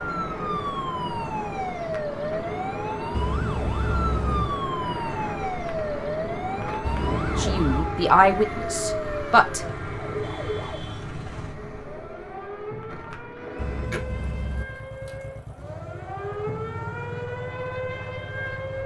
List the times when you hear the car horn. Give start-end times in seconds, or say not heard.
3.1-4.6, 6.8-8.0, 13.6-14.7.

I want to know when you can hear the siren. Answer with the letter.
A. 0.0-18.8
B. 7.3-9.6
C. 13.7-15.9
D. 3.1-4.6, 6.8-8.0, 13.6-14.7
A.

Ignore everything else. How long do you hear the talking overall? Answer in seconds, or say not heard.
2 s.